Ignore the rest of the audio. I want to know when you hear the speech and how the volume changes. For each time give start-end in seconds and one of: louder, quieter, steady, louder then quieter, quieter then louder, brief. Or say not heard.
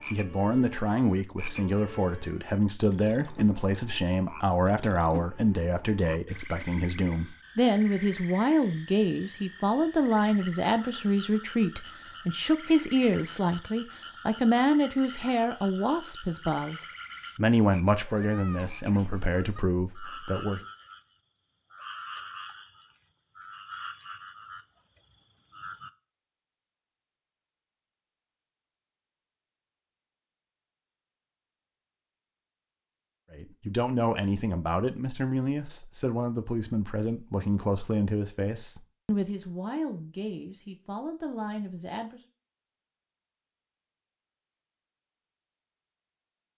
0.1-20.6 steady
33.3-42.2 quieter.